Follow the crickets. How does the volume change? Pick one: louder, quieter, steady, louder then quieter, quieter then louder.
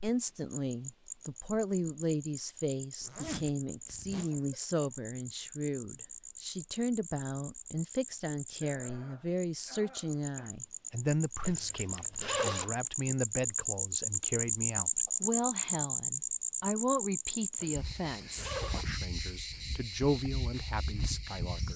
louder then quieter.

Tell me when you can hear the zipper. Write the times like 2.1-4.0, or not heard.
3.0-4.3, 11.4-12.8, 17.6-18.9.